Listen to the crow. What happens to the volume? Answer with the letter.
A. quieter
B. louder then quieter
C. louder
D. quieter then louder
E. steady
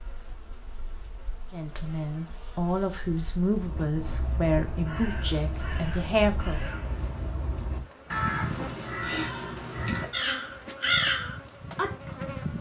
C.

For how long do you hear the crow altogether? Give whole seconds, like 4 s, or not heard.
9 s.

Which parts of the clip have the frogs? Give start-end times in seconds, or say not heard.
not heard.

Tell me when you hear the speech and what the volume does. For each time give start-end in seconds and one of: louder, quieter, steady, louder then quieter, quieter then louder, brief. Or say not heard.
1.5-6.6 steady.